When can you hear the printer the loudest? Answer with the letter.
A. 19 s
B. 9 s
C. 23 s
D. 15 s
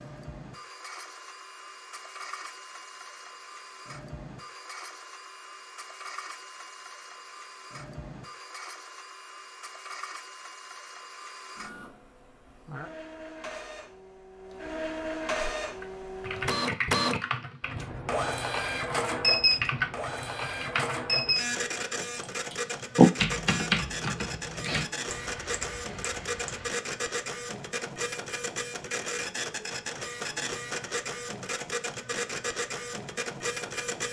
A.